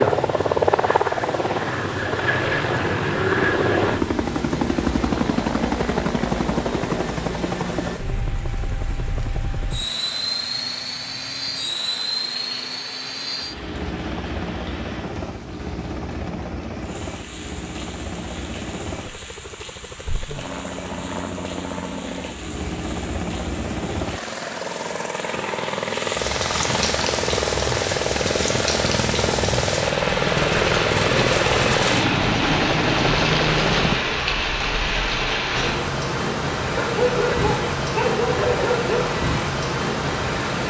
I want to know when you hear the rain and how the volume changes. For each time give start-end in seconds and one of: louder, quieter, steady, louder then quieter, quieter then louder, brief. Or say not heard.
0.0-40.6 louder.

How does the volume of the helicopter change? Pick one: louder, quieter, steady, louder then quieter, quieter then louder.
quieter then louder.